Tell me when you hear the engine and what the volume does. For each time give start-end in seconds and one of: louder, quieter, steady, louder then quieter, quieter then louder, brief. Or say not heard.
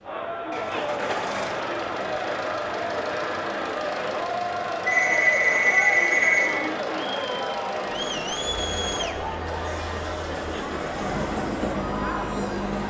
0.0-12.8 steady.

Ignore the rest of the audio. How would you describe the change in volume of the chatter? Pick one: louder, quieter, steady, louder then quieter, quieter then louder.
steady.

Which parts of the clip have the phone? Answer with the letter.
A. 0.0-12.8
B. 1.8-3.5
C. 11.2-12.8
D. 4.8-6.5
D.